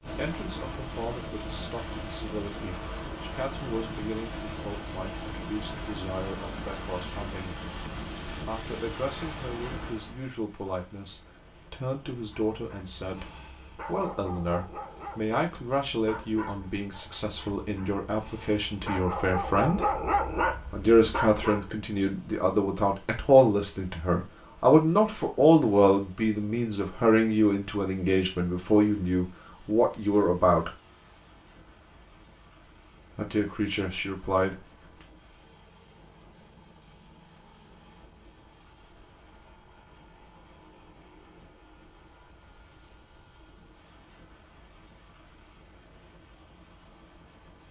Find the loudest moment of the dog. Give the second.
20 s.